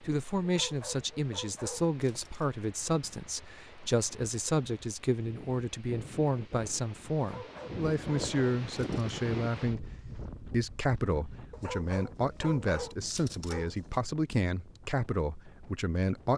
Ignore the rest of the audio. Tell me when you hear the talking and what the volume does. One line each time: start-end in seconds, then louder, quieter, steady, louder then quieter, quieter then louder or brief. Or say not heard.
0.0-16.3 steady.